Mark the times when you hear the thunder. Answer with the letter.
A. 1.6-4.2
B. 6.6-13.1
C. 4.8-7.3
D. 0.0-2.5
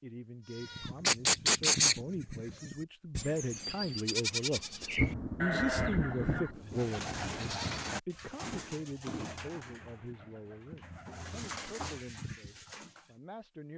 C.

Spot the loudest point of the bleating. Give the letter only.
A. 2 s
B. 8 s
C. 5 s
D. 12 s
A.